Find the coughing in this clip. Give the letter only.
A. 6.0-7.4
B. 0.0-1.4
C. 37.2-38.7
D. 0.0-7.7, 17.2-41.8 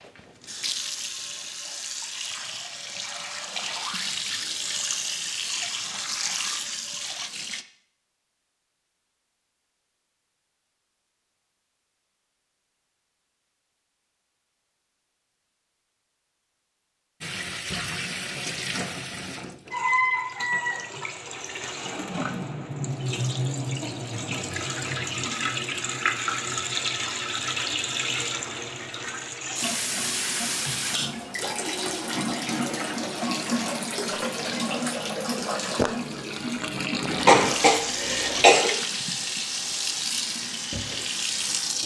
C.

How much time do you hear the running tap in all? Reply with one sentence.
The running tap can be heard for 32 seconds in total.